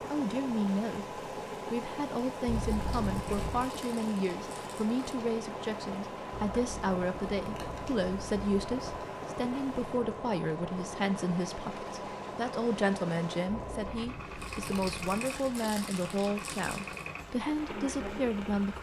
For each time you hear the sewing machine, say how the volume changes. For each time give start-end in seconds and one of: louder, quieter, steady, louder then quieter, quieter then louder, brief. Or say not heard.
0.0-18.7 steady.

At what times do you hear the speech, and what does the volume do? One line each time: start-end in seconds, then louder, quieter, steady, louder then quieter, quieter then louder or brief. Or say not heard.
0.1-18.7 steady.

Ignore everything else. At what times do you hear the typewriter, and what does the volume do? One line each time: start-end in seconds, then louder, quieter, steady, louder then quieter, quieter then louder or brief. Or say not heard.
not heard.